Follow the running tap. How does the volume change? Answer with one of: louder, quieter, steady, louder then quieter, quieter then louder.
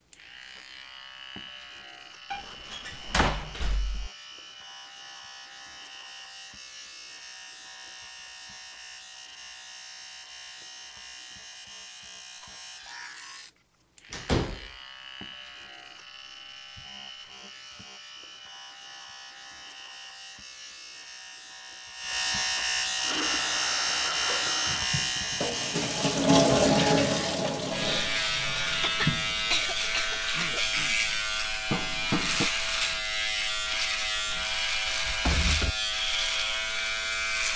louder then quieter.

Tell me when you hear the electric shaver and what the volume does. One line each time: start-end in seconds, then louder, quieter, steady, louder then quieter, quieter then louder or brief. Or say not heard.
0.0-37.5 louder.